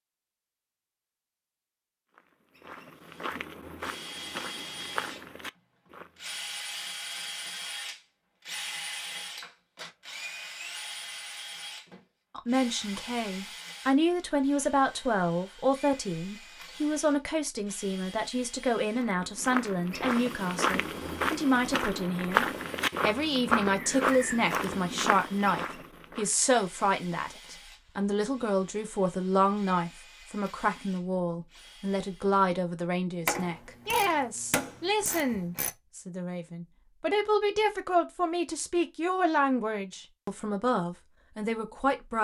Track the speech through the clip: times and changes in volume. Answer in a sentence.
You can hear the speech from 12.3 to 42.1 s, at a steady volume.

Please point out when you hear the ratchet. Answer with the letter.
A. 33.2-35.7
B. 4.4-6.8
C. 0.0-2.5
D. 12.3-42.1
A.